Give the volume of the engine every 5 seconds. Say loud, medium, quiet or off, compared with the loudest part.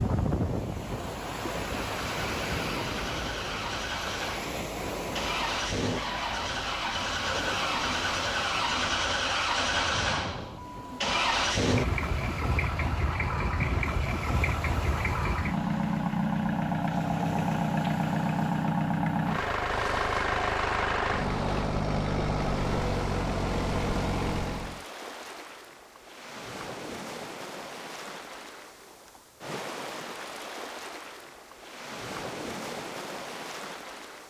medium, loud, loud, loud, loud, off, off.